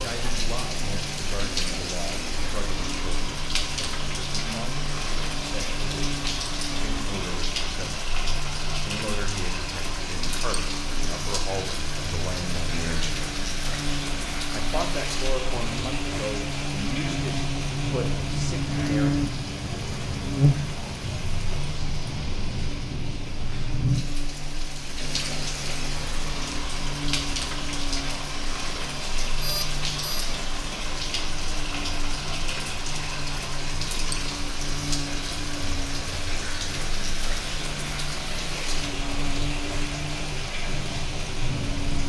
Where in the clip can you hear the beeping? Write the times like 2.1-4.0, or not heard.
29.4-30.3.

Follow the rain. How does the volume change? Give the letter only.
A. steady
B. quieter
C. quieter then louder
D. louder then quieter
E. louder
A.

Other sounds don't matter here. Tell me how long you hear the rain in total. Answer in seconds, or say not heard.
42 s.